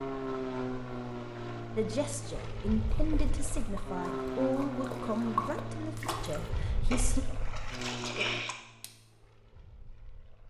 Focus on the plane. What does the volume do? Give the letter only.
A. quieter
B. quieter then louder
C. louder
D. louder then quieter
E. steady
A.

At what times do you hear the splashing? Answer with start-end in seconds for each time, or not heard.
2.8-8.9.